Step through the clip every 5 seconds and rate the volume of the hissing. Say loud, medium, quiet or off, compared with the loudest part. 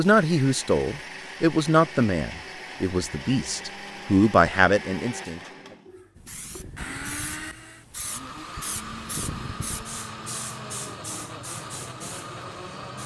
off, loud, loud.